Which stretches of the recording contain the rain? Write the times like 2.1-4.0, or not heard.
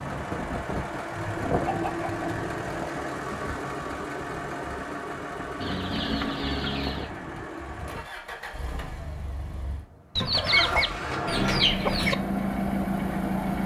not heard.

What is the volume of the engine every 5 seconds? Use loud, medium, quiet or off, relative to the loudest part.
loud, medium, loud.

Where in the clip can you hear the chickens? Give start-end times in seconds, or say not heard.
1.1-2.6, 5.6-7.1, 10.2-12.2.